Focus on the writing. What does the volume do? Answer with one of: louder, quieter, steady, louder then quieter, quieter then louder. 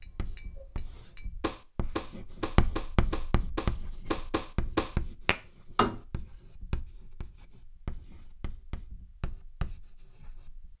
louder then quieter.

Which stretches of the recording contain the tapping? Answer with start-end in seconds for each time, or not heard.
0.0-6.0.